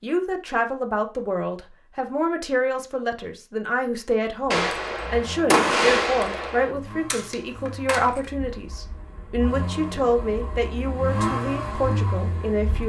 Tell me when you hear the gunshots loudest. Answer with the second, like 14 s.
6 s.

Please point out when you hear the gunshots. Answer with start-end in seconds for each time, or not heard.
4.5-8.2.